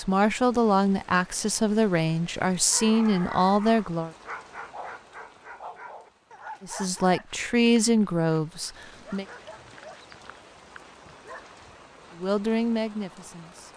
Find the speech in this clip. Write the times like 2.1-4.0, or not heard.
0.0-4.1, 6.6-9.2, 12.2-13.7.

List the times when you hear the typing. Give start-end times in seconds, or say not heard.
not heard.